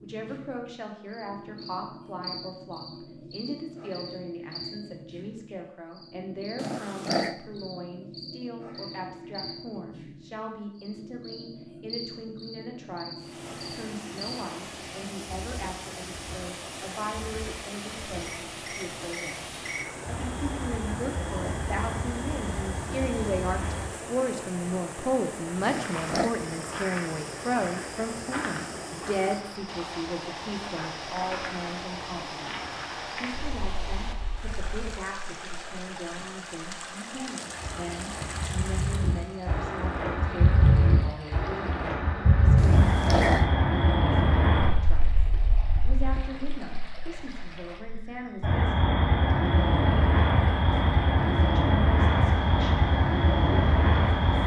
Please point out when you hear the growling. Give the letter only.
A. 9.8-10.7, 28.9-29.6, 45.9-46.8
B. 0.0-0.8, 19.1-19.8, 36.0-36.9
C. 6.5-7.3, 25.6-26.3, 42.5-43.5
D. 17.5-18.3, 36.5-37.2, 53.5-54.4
C.